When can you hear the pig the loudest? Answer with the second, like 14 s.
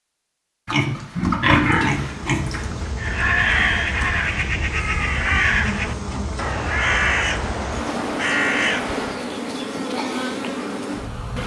2 s.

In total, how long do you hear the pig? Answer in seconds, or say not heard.
2 s.